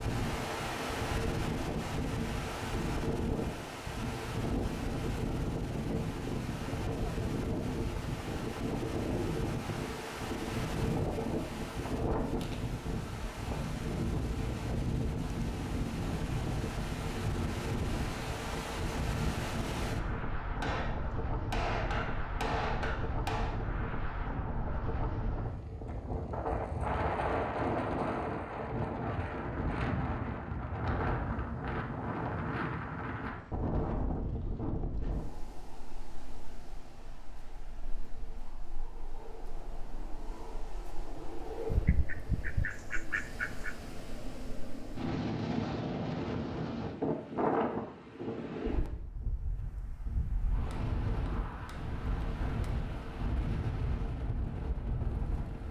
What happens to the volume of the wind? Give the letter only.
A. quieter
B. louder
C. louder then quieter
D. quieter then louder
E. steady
D.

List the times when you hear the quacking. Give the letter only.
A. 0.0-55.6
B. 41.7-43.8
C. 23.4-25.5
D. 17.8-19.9
B.